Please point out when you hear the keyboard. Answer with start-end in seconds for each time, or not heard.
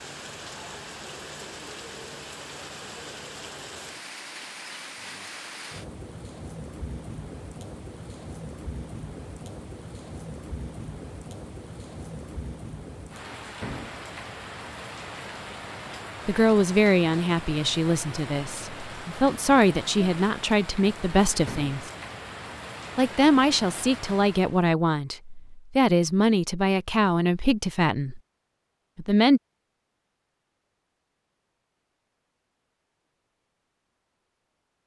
not heard.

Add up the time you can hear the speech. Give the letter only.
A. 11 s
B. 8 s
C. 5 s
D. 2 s
A.